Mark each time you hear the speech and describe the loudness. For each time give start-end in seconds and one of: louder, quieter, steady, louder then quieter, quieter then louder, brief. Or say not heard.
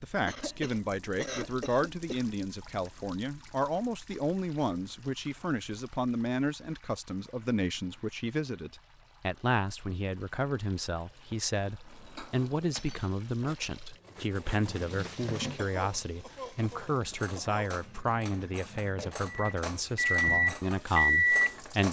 0.0-21.8 steady.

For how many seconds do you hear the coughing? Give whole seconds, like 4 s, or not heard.
4 s.